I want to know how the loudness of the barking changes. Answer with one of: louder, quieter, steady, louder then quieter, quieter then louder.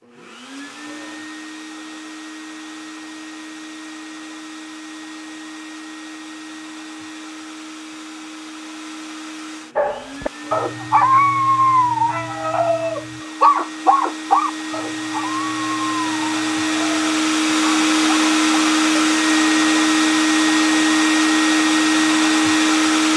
quieter.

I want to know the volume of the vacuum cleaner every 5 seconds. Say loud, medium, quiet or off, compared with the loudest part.
quiet, quiet, quiet, loud, loud.